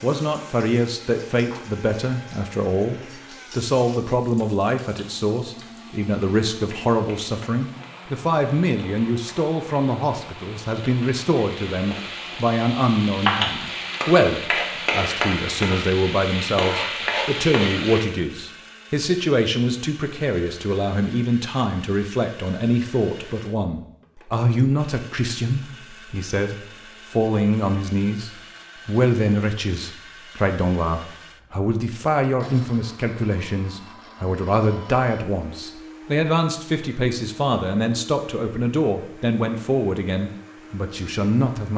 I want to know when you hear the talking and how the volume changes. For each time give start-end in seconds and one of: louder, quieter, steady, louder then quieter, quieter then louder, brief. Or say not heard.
0.0-41.7 steady.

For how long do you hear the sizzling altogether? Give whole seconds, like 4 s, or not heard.
18 s.